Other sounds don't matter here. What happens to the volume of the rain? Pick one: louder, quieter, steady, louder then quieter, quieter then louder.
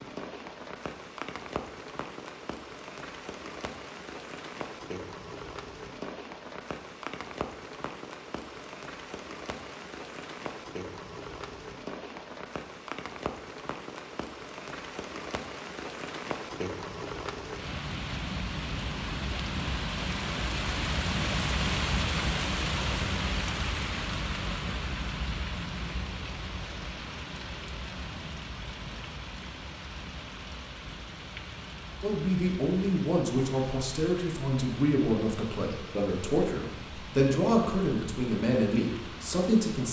louder then quieter.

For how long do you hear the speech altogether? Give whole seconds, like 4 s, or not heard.
8 s.